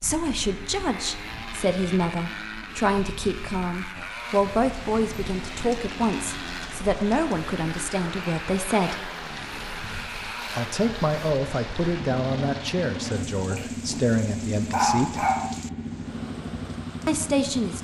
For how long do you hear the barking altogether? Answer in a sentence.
You can hear the barking for 2 seconds altogether.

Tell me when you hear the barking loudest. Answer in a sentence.
The loudest moment of the barking is at 15 seconds.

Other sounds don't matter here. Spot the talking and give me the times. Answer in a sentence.
You can hear the talking from 0.0 to 9.1 s, from 10.5 to 15.2 s and from 17.1 to 17.8 s.